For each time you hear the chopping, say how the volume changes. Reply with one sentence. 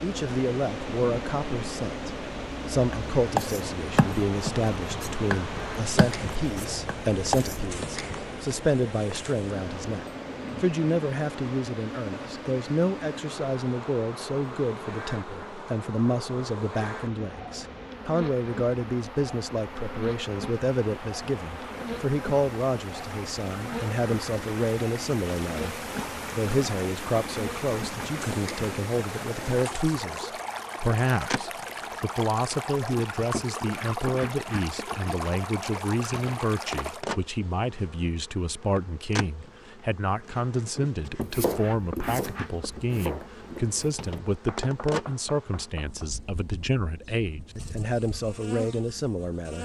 The chopping can be heard from 2.9 to 7.7 s, getting quieter; and from 41.0 to 46.1 s, getting quieter.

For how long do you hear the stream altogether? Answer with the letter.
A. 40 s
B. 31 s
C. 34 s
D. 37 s
D.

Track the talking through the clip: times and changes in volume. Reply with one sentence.
The talking can be heard from 0.0 to 49.6 s, at a steady volume.